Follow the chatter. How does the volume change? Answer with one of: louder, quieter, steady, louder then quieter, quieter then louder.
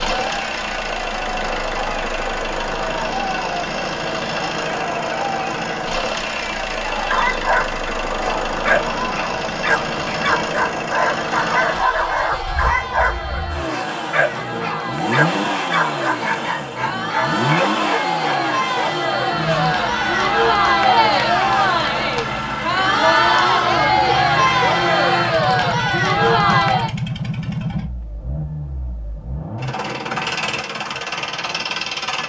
louder.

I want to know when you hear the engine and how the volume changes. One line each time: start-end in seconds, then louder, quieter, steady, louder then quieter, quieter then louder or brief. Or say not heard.
0.0-32.2 steady.